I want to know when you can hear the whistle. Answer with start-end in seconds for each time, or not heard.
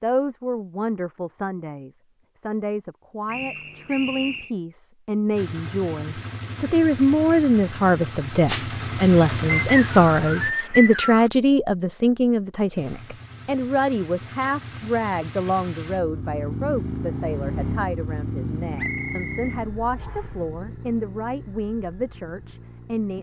3.3-4.5, 9.6-11.3, 18.8-20.3.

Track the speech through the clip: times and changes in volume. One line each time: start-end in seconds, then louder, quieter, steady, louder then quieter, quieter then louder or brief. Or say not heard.
0.0-23.1 louder then quieter.